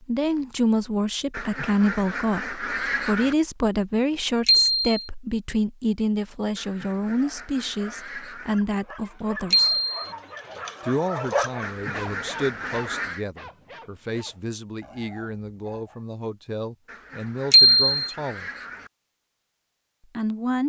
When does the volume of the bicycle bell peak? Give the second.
18 s.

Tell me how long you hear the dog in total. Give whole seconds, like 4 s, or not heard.
9 s.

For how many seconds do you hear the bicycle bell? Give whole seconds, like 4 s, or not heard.
2 s.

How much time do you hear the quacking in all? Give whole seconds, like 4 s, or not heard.
8 s.